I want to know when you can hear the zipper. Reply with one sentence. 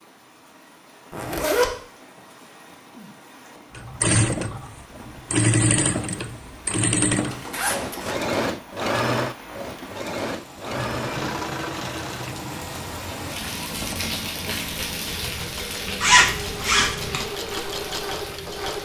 The zipper can be heard from 1.1 to 1.7 s, from 7.2 to 8.2 s and from 16.0 to 17.2 s.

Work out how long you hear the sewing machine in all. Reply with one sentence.
The sewing machine can be heard for 15 seconds in total.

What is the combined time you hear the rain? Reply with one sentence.
You can hear the rain for 19 seconds altogether.